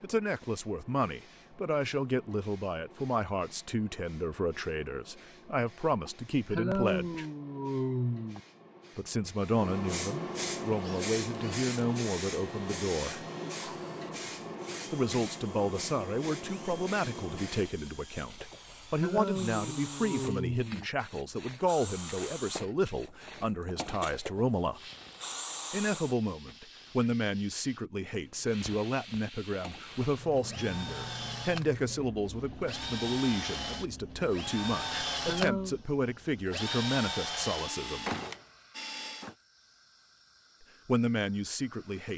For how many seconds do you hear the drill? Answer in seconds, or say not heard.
25 s.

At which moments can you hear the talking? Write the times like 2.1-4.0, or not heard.
0.0-7.2, 8.9-13.2, 14.9-24.8, 25.7-38.1, 40.9-42.1.